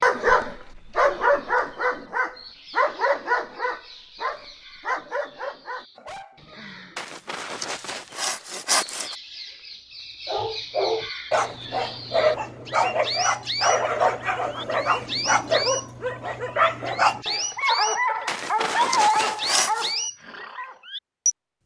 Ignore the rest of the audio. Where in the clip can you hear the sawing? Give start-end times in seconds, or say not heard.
7.0-9.2, 18.2-19.9.